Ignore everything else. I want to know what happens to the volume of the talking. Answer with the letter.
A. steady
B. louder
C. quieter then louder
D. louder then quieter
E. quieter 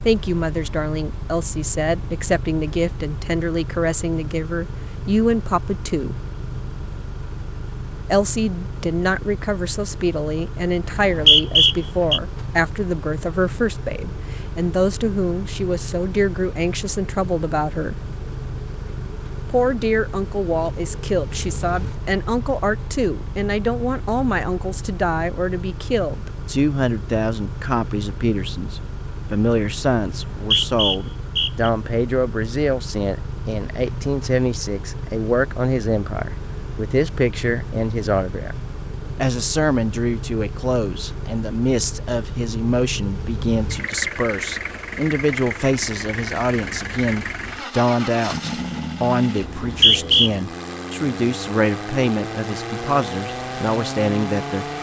A.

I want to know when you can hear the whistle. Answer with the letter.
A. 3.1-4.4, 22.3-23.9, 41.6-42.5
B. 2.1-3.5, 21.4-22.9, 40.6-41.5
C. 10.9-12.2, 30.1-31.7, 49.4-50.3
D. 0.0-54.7
C.